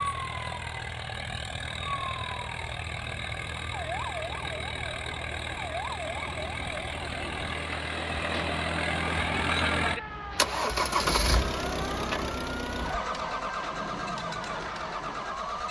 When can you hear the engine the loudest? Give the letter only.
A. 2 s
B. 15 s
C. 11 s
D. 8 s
C.